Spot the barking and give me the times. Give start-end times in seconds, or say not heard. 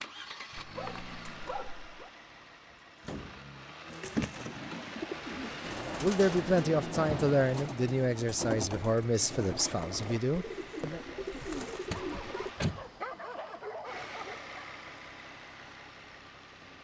0.6-2.1, 11.9-14.5.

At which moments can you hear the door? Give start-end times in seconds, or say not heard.
2.7-3.5, 6.2-7.5, 11.9-12.8.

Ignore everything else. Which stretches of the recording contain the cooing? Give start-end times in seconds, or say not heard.
3.9-12.5.